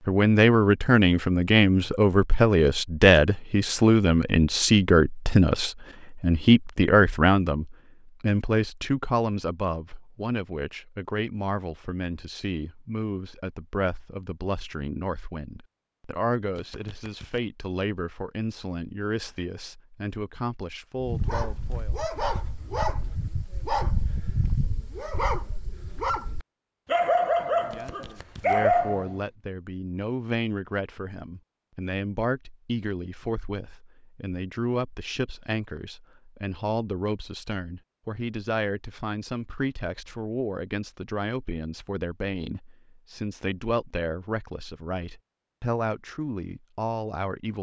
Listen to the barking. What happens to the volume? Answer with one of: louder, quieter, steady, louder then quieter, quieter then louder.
louder.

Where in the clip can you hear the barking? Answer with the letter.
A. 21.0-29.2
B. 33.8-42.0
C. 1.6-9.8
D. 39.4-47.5
A.